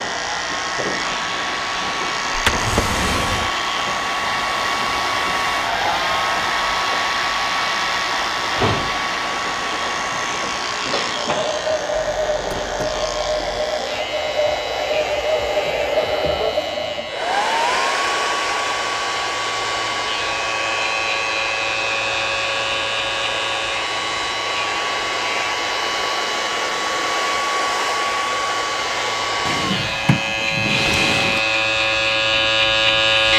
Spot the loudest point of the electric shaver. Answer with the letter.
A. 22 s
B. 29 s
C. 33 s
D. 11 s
C.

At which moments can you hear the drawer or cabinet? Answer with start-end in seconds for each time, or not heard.
2.3-3.5, 12.1-13.5, 29.4-31.4.